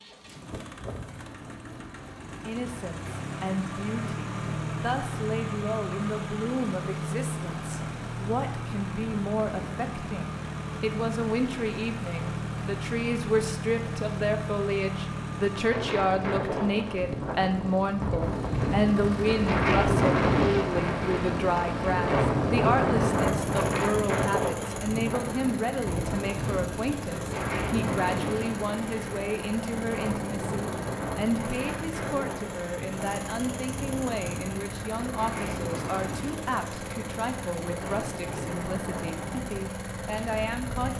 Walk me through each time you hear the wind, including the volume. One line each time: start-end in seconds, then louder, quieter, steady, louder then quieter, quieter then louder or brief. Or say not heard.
15.7-40.9 quieter.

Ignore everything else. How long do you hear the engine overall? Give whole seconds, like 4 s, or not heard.
41 s.